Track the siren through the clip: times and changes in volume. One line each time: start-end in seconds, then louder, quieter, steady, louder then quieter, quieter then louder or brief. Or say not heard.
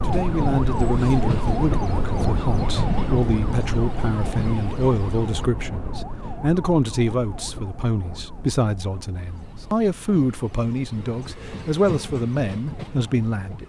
0.0-13.6 quieter.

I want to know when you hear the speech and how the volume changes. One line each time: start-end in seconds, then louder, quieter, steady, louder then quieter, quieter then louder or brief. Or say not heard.
0.0-13.6 steady.